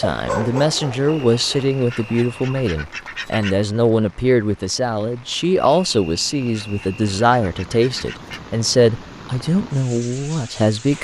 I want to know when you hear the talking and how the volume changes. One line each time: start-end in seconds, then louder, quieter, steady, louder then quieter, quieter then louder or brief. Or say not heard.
0.0-10.9 steady.